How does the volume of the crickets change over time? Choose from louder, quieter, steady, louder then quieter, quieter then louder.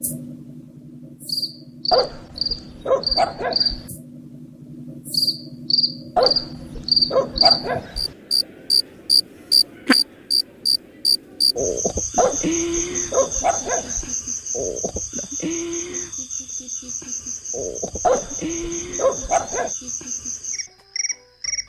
louder then quieter.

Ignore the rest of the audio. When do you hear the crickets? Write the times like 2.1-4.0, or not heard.
0.0-21.6.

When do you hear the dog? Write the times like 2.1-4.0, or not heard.
1.9-3.8, 6.2-8.1, 12.2-14.1, 18.0-19.7.